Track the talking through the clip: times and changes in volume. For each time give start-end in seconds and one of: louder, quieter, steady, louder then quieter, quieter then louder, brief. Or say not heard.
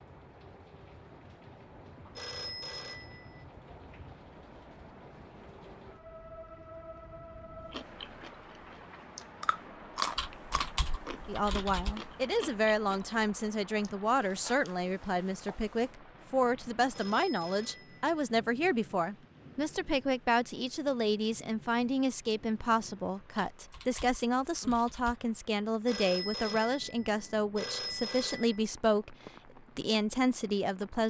11.2-29.1 steady
29.8-31.0 brief.